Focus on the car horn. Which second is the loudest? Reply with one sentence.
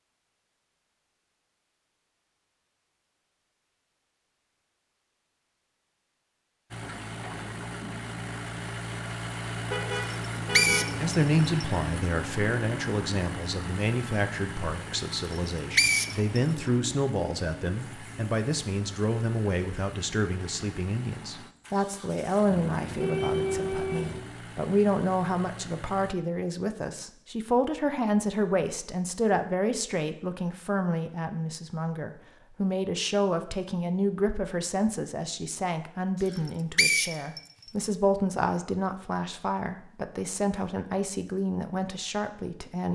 The loudest moment of the car horn is at 23 seconds.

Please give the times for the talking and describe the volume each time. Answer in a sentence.
You can hear the talking from 10.9 to 42.9 s, at a steady volume.